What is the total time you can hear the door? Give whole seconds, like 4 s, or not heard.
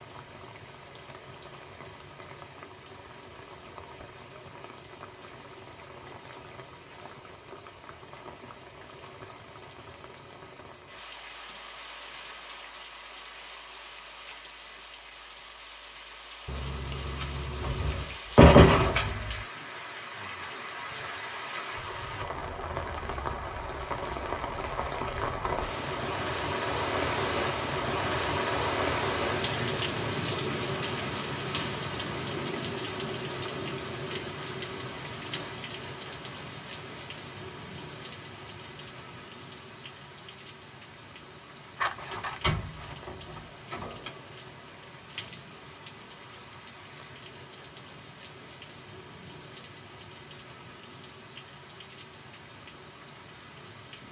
4 s.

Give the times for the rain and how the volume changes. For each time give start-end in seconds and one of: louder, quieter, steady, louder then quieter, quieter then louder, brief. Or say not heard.
0.0-54.0 louder then quieter.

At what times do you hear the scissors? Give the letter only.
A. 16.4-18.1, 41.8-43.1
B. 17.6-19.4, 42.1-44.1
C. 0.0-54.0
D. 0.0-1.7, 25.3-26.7
A.